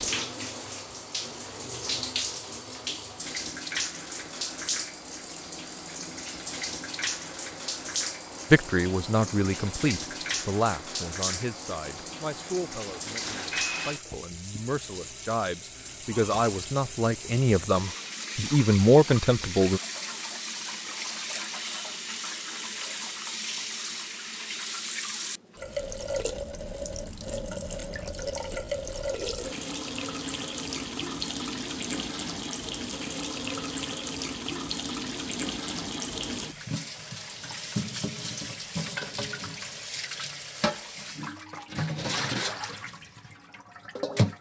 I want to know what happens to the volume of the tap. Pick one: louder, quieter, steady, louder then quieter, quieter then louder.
steady.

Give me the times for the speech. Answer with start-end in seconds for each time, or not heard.
8.5-19.8.